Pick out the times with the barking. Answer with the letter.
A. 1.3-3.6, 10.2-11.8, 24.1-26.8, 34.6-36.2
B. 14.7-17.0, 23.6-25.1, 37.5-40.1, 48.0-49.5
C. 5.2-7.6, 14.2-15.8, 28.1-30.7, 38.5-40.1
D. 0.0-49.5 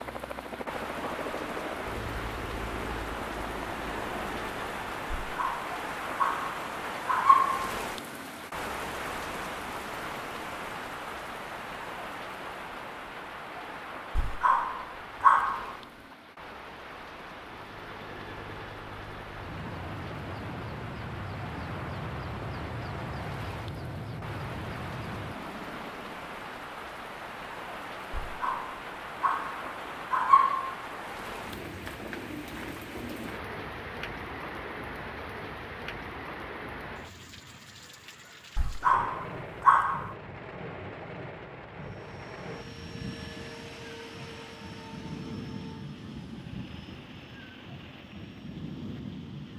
C.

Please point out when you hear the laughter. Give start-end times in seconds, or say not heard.
not heard.